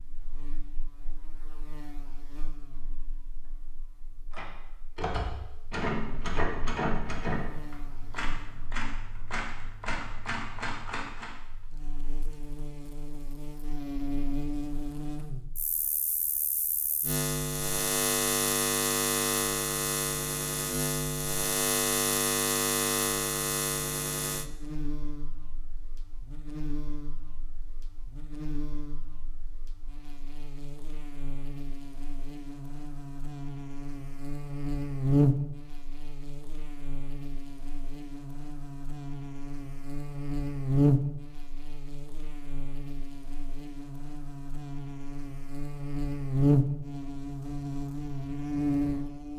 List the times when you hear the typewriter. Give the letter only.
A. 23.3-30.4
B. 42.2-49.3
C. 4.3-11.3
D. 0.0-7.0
C.